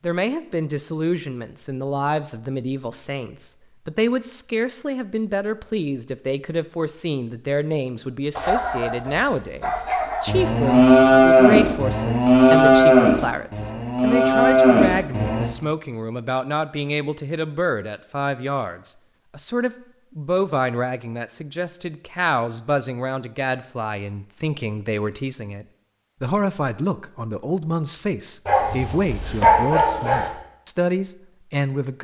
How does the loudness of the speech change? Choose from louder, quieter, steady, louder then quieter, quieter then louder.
steady.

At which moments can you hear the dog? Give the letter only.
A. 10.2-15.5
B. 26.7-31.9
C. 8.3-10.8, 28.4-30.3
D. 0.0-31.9
C.